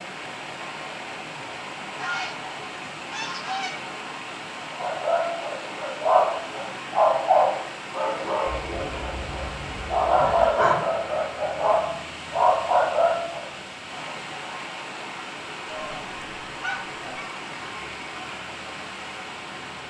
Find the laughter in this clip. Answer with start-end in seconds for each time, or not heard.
10.2-10.8.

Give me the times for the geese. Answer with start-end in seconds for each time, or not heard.
1.9-3.9, 8.4-10.5, 15.7-17.4.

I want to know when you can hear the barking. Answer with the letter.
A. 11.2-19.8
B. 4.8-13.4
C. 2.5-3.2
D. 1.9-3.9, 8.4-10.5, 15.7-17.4
B.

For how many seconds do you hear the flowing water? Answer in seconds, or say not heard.
20 s.